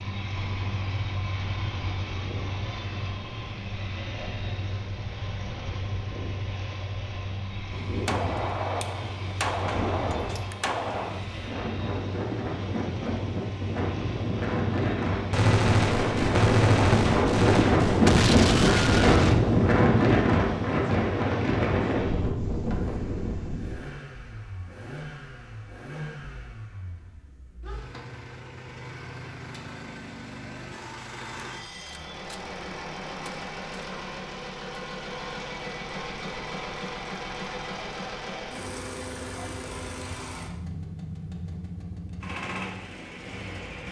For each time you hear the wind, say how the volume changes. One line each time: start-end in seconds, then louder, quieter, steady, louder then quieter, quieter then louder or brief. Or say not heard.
0.0-23.8 louder.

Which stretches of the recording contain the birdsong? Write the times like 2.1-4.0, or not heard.
not heard.